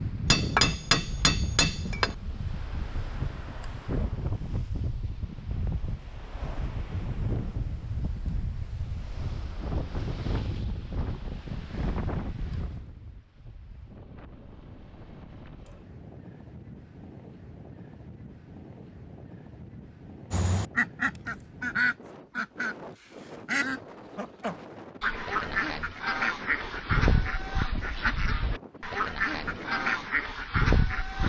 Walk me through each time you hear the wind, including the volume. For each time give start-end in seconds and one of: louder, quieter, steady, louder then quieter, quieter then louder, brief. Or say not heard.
0.0-31.2 quieter.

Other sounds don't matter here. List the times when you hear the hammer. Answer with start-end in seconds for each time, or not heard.
0.3-2.1.